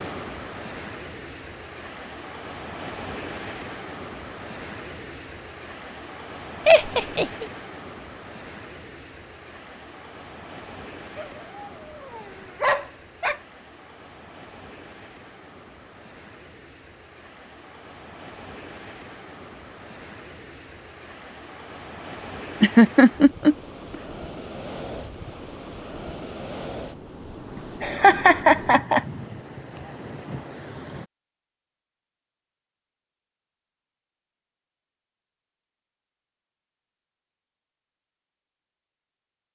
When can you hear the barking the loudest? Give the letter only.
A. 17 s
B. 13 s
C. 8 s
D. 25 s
B.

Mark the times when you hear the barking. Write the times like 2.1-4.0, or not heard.
11.2-13.4.